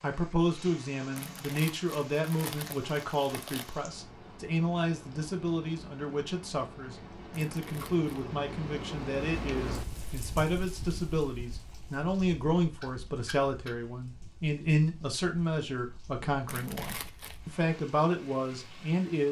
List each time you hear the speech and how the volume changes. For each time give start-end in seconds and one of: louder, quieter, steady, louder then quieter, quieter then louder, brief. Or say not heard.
0.0-19.2 steady.